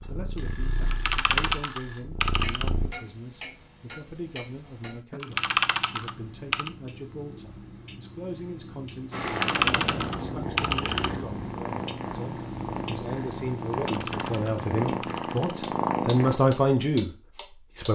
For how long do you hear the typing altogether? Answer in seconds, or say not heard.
7 s.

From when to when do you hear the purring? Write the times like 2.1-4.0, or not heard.
0.0-2.9, 9.1-16.4.